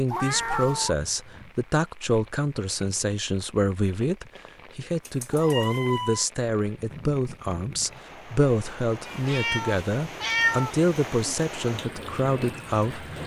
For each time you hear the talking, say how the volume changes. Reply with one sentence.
You can hear the talking from 0.0 to 13.1 s, at a steady volume.